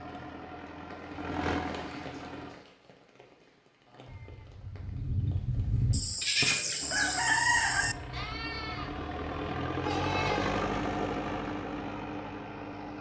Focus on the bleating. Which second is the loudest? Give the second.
6 s.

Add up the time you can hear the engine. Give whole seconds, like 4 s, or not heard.
9 s.